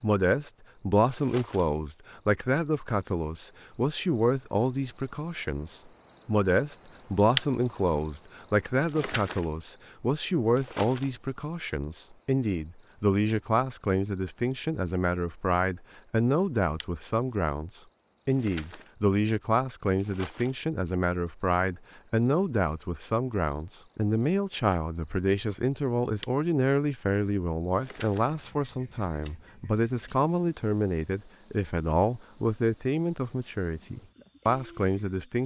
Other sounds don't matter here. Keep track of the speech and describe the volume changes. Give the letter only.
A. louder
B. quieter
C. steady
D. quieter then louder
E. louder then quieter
C.